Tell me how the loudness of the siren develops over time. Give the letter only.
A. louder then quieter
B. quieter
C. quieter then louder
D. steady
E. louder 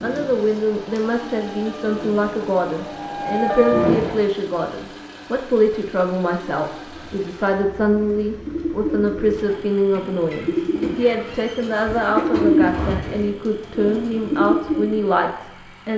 E.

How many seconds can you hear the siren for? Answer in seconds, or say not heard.
4 s.